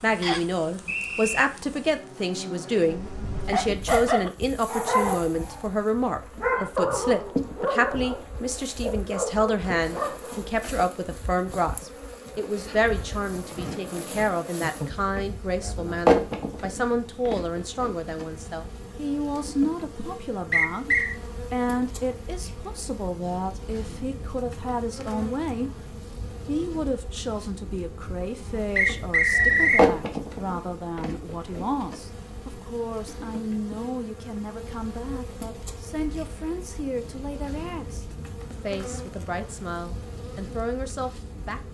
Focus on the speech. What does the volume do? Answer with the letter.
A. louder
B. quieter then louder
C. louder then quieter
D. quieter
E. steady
D.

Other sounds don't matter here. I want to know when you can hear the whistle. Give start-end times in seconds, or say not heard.
0.2-1.4, 20.5-21.1, 28.8-29.9.